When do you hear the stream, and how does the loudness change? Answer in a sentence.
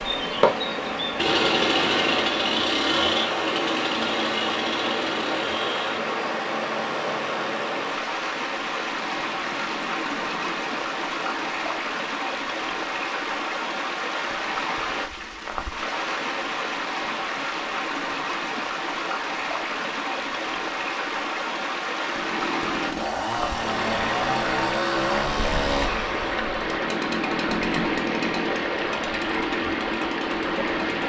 The stream can be heard from 0.0 to 31.0 s, at a steady volume.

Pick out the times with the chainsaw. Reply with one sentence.
You can hear the chainsaw from 0.0 to 11.8 s and from 21.9 to 31.0 s.